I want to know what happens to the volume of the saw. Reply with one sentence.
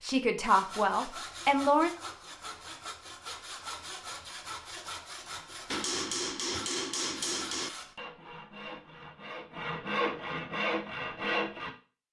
The volume of the saw goes up.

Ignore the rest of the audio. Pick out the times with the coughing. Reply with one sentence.
You can't hear the coughing here.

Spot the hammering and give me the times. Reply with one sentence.
You can hear the hammering from 5.7 to 7.7 s.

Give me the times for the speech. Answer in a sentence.
You can hear the speech from 0.0 to 1.9 s.